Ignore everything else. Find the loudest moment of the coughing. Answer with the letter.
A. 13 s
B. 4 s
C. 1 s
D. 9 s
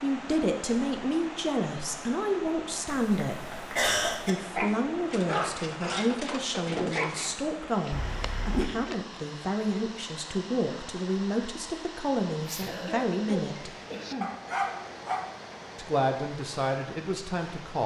B.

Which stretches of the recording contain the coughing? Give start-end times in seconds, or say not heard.
2.9-4.3, 7.9-8.7, 12.4-14.3.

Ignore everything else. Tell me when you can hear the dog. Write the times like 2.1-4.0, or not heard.
4.5-7.3, 14.2-15.3.